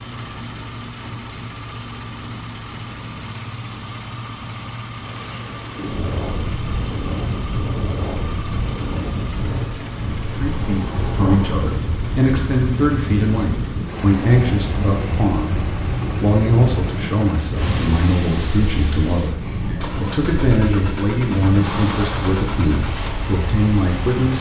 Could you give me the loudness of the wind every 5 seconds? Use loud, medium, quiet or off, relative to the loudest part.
off, loud, loud, loud, loud.